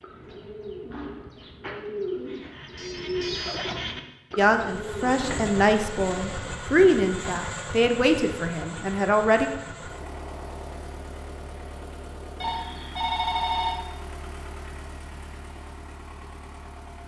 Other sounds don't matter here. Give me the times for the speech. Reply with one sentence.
The speech can be heard from 4.3 to 9.5 s.